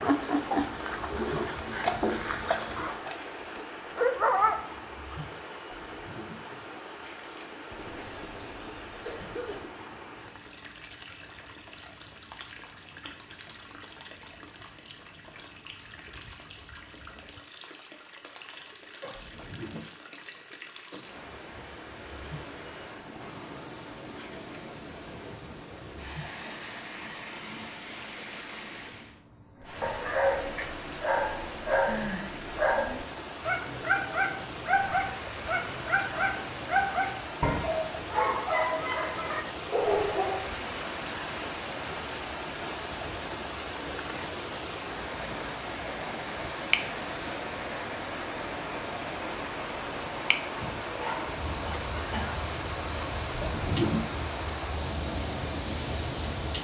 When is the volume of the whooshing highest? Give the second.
54 s.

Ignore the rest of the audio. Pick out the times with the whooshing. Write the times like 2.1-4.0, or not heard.
5.7-6.5, 19.1-19.9, 53.4-54.1.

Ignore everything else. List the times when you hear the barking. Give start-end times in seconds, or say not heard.
0.0-4.6, 29.6-40.5.